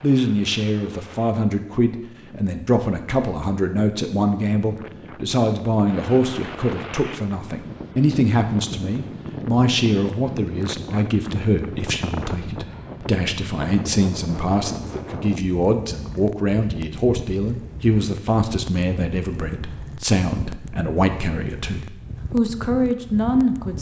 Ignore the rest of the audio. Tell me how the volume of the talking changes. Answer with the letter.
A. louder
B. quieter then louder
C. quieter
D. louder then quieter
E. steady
E.